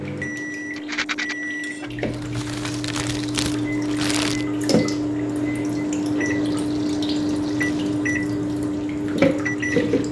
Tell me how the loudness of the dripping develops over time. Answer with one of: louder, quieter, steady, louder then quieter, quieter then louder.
louder.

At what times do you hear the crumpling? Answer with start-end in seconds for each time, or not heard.
2.0-4.5.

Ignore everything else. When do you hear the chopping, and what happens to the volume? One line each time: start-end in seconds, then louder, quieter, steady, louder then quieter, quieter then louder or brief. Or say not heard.
not heard.